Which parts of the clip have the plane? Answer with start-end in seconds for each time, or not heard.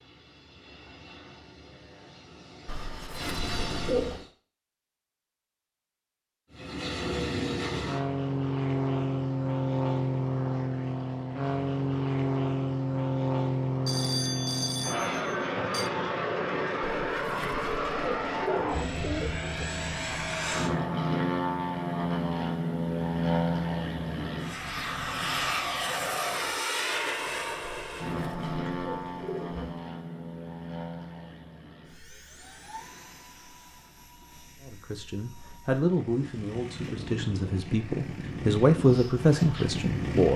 0.0-4.3, 6.5-40.3.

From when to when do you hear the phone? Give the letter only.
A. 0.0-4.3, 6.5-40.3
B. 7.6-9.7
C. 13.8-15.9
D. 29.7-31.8
C.